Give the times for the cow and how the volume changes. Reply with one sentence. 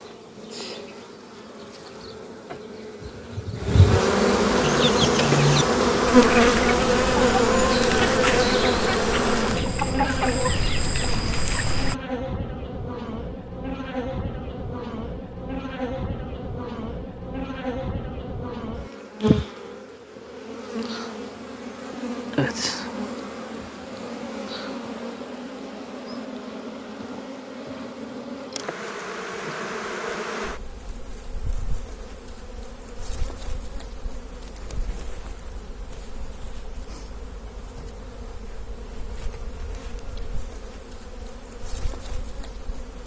The cow can't be heard in this clip.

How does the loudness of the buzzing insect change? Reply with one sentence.
The volume of the buzzing insect goes down.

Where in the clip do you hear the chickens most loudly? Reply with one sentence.
The volume of the chickens peaks at 5 seconds.